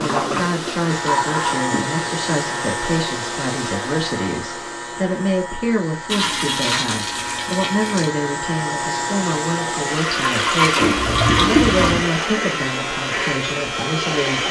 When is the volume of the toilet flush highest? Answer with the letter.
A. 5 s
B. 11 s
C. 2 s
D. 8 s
B.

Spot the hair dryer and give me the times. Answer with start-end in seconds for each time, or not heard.
0.0-14.4.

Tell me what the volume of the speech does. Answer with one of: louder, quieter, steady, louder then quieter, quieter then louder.
steady.